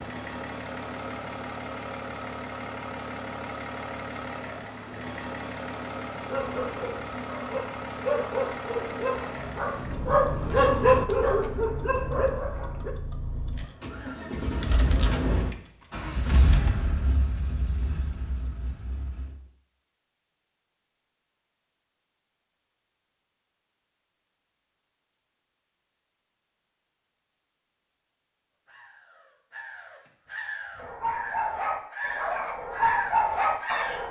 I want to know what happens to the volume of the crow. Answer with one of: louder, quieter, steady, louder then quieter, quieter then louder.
louder.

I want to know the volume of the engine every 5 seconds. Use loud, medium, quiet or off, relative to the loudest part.
loud, loud, loud, loud, off, off, off.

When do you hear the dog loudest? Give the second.
11 s.